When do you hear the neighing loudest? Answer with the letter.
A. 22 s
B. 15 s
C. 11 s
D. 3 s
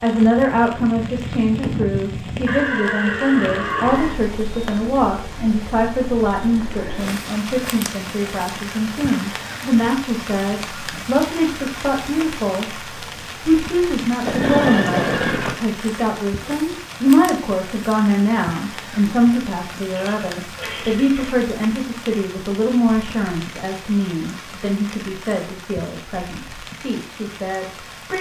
B.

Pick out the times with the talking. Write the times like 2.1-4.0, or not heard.
0.0-28.1.